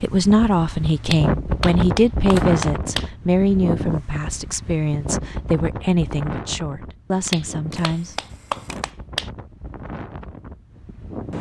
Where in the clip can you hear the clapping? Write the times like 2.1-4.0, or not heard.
1.1-3.1, 7.3-9.3.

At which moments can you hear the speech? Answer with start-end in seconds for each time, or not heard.
0.0-8.2.